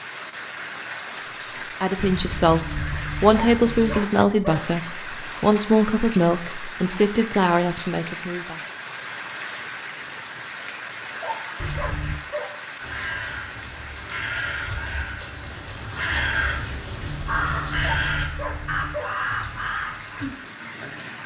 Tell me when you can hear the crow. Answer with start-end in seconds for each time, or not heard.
12.8-20.8.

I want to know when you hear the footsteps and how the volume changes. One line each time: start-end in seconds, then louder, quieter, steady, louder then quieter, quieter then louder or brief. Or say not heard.
not heard.